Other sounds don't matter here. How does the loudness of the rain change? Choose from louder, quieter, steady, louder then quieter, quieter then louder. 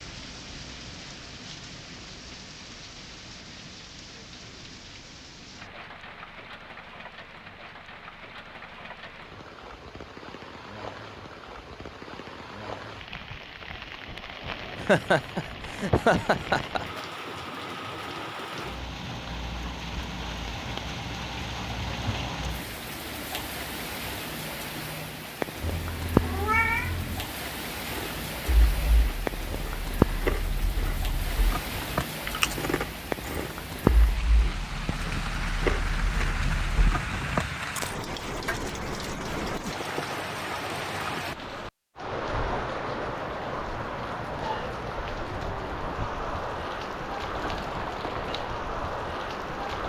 louder.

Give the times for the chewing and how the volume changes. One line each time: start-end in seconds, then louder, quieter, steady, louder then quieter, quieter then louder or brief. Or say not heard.
27.8-38.5 louder.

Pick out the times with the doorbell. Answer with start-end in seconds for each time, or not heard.
not heard.